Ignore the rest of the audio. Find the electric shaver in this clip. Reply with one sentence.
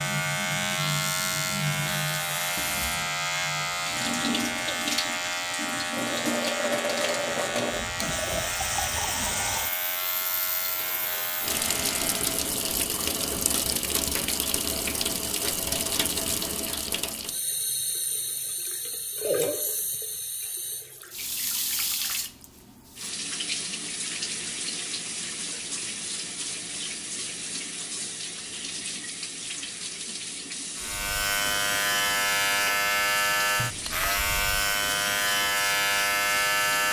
You can hear the electric shaver from 0.0 to 12.4 s and from 30.8 to 36.8 s.